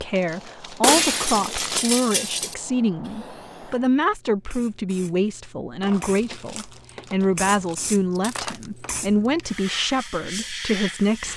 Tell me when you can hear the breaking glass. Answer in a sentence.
The breaking glass can be heard from 0.8 to 2.5 s and from 8.1 to 9.4 s.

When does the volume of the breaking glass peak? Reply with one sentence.
The volume of the breaking glass peaks at 1 second.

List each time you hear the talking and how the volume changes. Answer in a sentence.
The talking can be heard from 0.0 to 11.3 s, at a steady volume.